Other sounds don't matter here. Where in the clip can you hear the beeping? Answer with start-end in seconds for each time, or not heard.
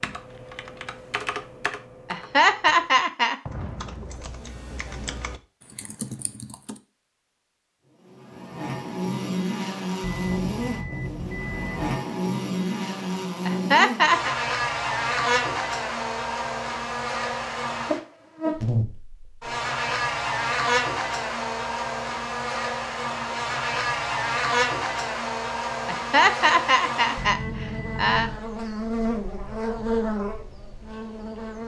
10.0-11.9, 27.1-28.4.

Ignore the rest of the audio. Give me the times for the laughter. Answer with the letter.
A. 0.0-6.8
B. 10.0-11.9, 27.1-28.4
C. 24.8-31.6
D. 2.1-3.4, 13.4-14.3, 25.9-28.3
D.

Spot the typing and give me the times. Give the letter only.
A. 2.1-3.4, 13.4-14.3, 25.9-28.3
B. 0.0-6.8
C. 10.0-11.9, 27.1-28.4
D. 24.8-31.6
B.